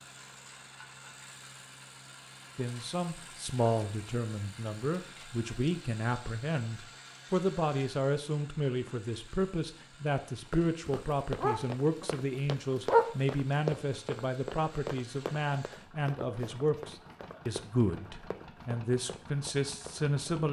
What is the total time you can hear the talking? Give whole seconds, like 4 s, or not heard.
18 s.